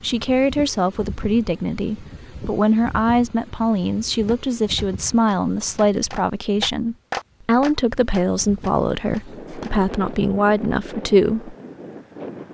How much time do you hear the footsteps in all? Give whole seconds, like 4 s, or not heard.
not heard.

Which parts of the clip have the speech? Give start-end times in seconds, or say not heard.
0.0-11.6.